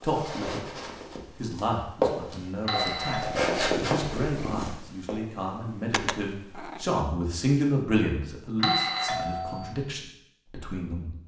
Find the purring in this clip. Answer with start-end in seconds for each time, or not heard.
3.1-7.0.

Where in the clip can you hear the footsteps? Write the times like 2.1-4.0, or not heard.
0.0-5.2.